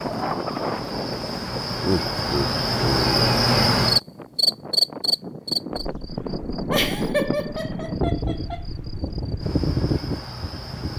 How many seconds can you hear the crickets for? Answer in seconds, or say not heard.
11 s.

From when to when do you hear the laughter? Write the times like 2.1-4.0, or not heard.
1.8-3.4, 6.7-8.6.